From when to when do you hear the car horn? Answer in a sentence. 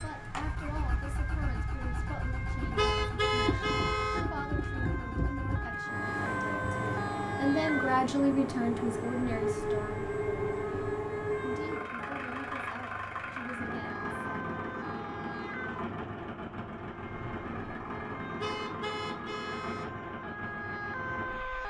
The car horn can be heard from 2.8 to 4.2 s and from 18.4 to 19.9 s.